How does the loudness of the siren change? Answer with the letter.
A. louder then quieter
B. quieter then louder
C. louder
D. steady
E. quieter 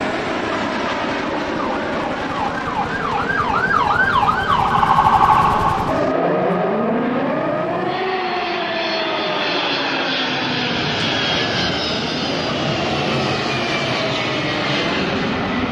A.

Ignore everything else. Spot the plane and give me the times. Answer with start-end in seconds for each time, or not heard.
0.0-15.6.